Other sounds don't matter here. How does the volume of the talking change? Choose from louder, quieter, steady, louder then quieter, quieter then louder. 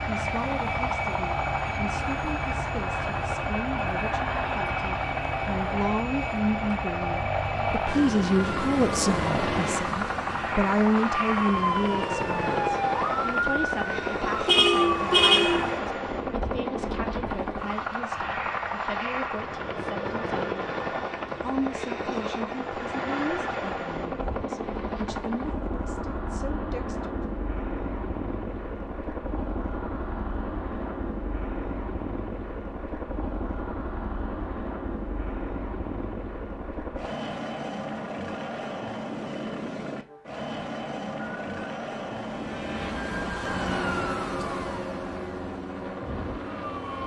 louder then quieter.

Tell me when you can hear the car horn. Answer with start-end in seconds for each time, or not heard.
14.4-15.8.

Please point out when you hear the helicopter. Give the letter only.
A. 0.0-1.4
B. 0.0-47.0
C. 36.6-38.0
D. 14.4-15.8
B.